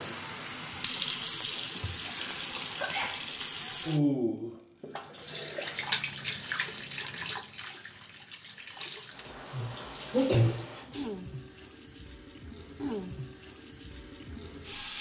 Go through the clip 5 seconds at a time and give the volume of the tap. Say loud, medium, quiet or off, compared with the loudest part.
loud, loud, medium.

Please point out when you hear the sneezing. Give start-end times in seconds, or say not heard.
2.0-3.2, 9.5-10.6.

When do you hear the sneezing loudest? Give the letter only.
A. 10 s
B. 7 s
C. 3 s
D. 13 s
A.